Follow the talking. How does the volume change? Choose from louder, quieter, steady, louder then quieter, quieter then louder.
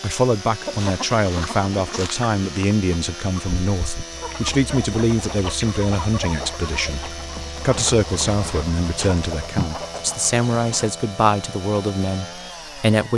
steady.